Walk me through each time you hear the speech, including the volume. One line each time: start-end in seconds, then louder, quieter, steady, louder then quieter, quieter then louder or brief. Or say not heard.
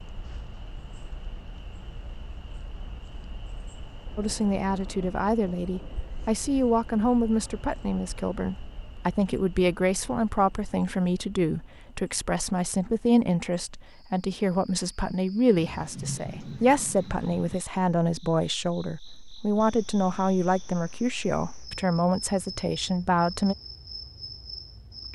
4.2-23.6 steady.